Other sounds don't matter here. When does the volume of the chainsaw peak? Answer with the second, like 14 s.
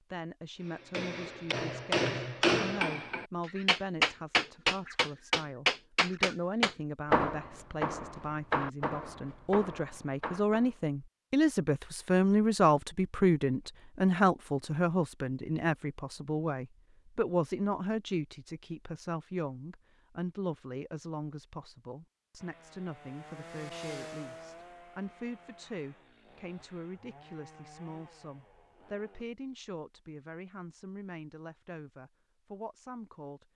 24 s.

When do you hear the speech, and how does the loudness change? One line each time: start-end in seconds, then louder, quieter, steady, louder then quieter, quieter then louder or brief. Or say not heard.
0.1-33.5 louder then quieter.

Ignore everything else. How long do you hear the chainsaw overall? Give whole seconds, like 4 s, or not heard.
7 s.